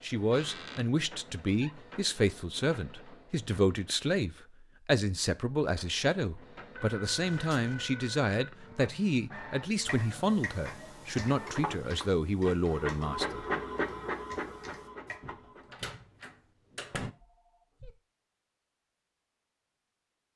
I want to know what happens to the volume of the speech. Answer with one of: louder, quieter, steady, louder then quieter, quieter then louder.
steady.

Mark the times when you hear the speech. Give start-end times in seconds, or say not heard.
0.0-13.4.